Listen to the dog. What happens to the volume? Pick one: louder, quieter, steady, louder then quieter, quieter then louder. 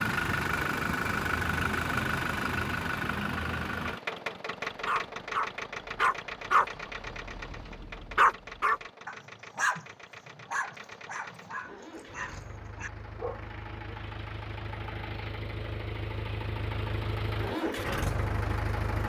quieter.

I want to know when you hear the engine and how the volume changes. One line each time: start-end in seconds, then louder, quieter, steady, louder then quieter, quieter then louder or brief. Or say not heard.
0.0-19.0 quieter then louder.